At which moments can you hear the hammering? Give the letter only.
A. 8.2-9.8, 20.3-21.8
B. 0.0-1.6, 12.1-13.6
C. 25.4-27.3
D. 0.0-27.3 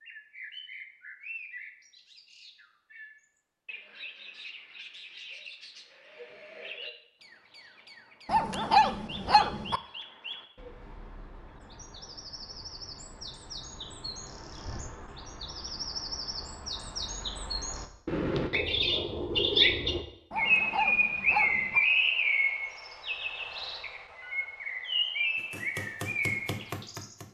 C.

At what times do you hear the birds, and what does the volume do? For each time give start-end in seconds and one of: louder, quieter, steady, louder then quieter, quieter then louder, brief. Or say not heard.
0.0-27.3 louder.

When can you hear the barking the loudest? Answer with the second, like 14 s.
9 s.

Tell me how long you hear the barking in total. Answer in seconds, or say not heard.
3 s.